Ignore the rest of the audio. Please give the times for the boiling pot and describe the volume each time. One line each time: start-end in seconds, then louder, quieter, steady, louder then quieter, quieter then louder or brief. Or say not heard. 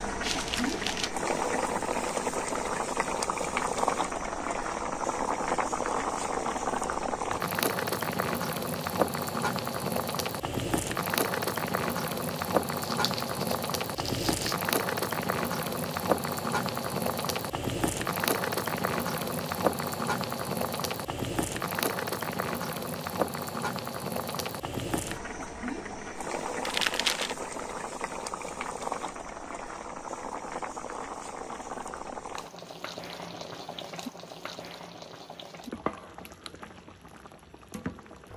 0.0-38.3 quieter.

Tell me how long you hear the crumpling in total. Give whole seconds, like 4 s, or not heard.
3 s.